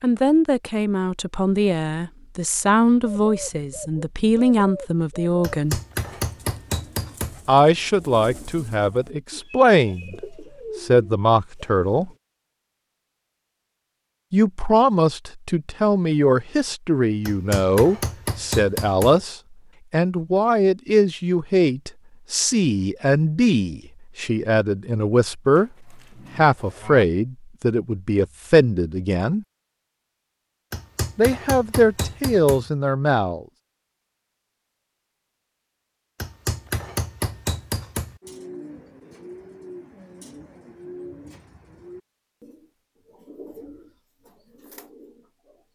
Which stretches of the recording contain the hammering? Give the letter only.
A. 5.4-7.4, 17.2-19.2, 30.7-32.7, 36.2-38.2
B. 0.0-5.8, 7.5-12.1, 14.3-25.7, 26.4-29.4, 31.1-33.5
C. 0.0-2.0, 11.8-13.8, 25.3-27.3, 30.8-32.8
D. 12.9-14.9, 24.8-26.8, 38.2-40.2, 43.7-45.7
A.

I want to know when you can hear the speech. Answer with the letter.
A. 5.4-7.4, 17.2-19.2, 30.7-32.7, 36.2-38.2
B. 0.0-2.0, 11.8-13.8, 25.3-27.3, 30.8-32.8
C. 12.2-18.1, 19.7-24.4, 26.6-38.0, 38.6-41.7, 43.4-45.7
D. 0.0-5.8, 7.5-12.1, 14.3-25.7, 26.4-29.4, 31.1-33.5
D.